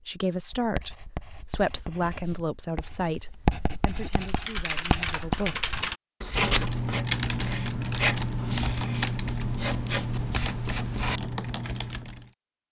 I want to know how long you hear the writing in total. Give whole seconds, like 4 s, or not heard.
11 s.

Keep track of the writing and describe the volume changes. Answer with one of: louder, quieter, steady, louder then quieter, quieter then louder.
louder then quieter.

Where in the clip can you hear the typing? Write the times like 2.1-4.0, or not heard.
4.1-12.3.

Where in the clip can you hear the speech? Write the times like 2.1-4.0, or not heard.
0.1-5.5.